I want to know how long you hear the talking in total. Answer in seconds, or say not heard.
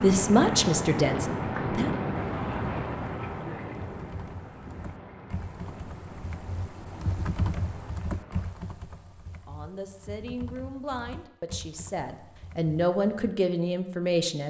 7 s.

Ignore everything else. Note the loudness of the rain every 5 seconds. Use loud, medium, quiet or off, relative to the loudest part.
loud, quiet, off.